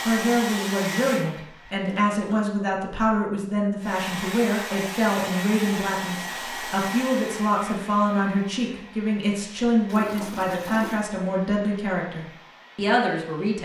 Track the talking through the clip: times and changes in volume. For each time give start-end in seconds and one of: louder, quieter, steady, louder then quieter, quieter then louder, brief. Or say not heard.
0.1-13.6 steady.